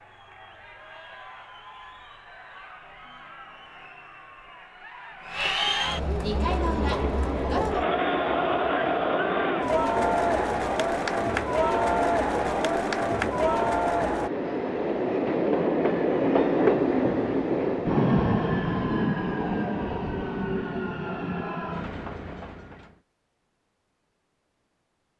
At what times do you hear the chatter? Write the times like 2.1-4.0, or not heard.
0.0-14.3.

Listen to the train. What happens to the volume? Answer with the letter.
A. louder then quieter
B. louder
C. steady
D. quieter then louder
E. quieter
A.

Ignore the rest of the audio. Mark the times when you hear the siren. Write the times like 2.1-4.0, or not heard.
not heard.